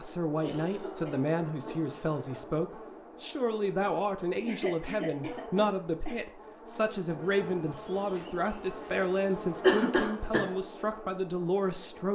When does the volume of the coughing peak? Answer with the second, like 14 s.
10 s.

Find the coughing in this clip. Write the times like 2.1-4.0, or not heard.
0.4-1.3, 4.5-6.2, 9.6-10.5.